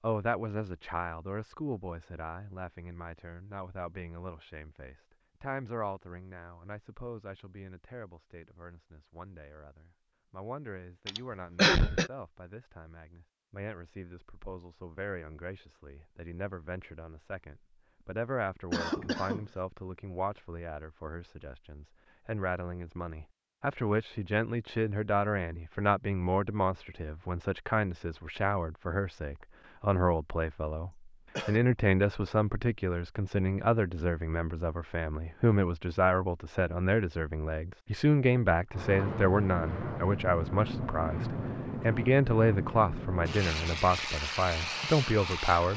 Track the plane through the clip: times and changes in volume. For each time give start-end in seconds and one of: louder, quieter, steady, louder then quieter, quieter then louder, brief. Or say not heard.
38.7-45.7 steady.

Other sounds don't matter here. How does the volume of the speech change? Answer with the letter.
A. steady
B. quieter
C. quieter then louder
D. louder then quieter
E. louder
E.